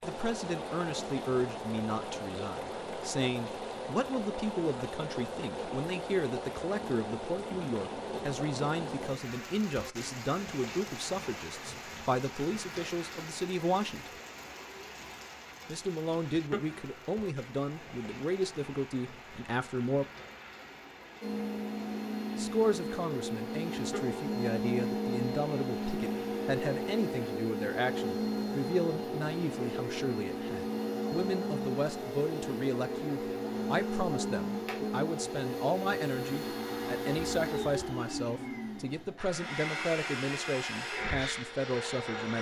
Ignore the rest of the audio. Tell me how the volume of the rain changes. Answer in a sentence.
The loudness of the rain goes down.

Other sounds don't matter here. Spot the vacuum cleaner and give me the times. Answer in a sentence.
The vacuum cleaner can be heard from 21.2 to 42.3 s.